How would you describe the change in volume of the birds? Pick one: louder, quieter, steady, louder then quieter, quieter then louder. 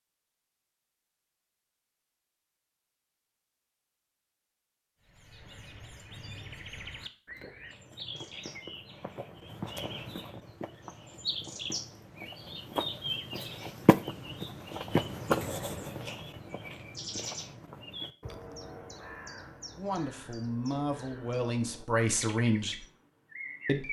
louder then quieter.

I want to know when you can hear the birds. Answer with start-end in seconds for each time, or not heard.
5.0-23.8.